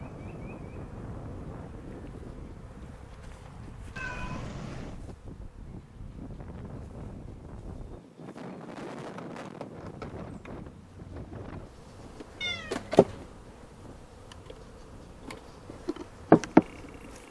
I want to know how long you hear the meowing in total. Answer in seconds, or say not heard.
2 s.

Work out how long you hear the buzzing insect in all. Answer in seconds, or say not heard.
17 s.